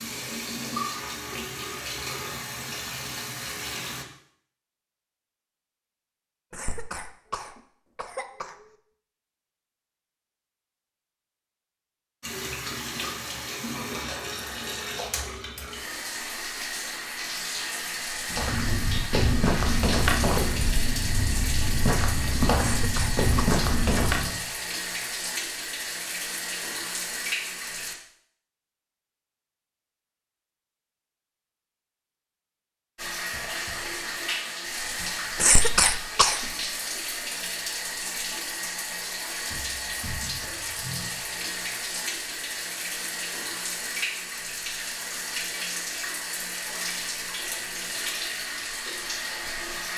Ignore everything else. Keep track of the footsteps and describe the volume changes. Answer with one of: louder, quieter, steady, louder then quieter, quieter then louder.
quieter then louder.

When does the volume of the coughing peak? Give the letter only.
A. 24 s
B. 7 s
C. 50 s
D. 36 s
D.